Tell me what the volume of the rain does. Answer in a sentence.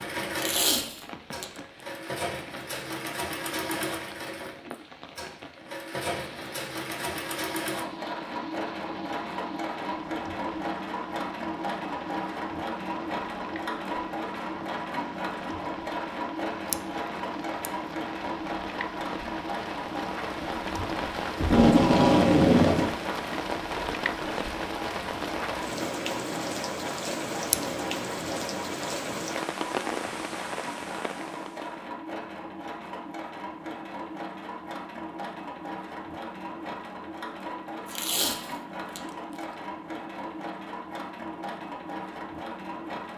The loudness of the rain goes up.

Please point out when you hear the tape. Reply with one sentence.
The tape can be heard from 0.3 to 1.4 s, from 21.4 to 22.9 s and from 37.9 to 39.0 s.